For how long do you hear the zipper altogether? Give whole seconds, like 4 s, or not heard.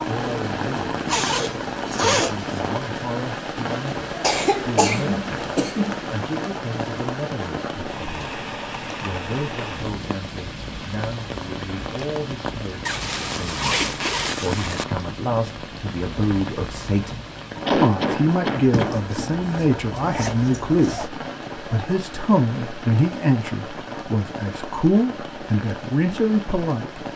6 s.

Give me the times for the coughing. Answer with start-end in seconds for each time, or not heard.
4.2-6.0, 17.6-19.0.